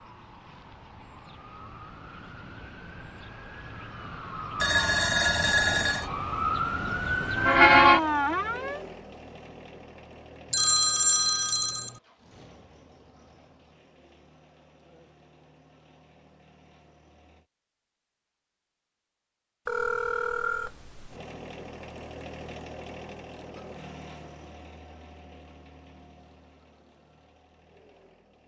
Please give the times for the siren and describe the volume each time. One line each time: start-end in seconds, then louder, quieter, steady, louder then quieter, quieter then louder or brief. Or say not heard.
0.0-8.8 louder.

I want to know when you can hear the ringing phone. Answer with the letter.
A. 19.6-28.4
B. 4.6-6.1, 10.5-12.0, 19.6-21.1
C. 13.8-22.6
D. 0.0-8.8
B.